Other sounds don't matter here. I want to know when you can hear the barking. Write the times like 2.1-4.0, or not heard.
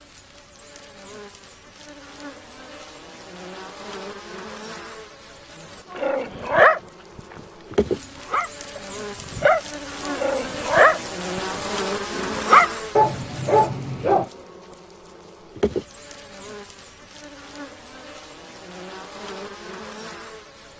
5.9-14.2.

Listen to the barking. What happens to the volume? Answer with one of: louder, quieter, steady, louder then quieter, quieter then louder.
quieter then louder.